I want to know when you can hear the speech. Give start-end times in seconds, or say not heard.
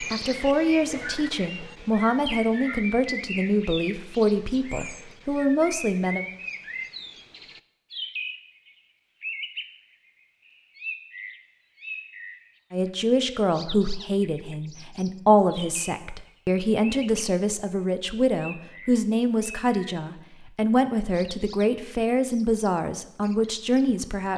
0.0-6.2, 12.7-24.3.